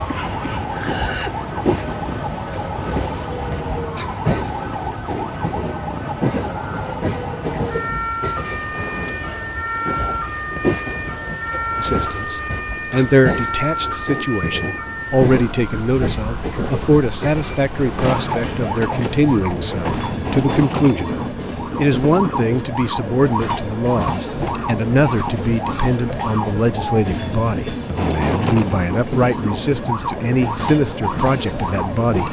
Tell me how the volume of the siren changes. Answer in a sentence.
The loudness of the siren stays about the same.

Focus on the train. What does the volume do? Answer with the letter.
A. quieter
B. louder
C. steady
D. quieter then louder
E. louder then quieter
C.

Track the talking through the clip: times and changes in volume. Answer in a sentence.
You can hear the talking from 11.8 to 32.2 s, at a steady volume.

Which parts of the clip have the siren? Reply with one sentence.
The siren can be heard from 0.0 to 32.2 s.